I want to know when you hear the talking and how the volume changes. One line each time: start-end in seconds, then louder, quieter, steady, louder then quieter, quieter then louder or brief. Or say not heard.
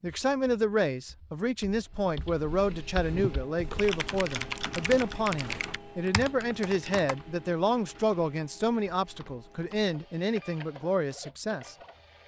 0.0-11.8 steady.